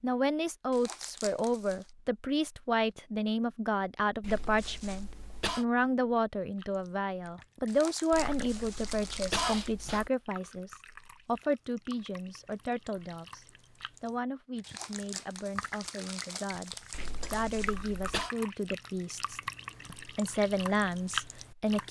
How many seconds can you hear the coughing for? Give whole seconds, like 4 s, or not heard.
5 s.